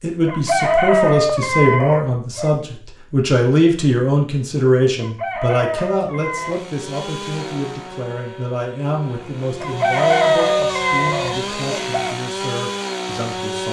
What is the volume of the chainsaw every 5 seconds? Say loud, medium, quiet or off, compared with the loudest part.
off, medium, loud.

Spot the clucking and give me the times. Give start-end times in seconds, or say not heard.
0.2-2.5, 5.0-6.7, 9.6-12.2.